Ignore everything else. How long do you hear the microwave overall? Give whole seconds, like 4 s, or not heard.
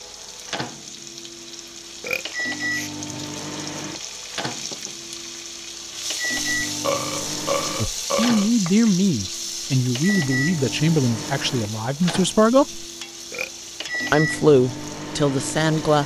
16 s.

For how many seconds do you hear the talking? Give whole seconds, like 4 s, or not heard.
7 s.